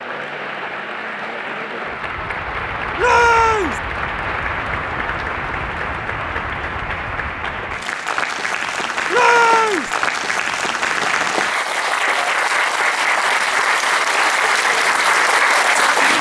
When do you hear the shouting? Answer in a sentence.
You can hear the shouting from 3.0 to 3.8 s and from 9.1 to 9.9 s.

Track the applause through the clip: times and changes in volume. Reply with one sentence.
You can hear the applause from 0.0 to 16.1 s, getting louder.